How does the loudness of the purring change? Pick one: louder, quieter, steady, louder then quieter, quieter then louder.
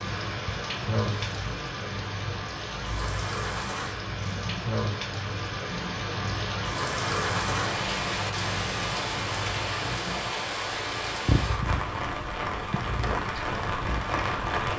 louder.